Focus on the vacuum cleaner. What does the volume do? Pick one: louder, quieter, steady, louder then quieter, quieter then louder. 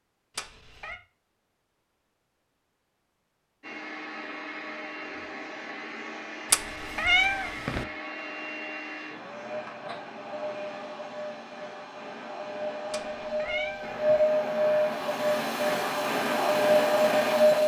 louder.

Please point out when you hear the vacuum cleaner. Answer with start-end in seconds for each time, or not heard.
3.6-17.6.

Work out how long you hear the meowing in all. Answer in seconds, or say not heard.
3 s.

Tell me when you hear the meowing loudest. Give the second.
7 s.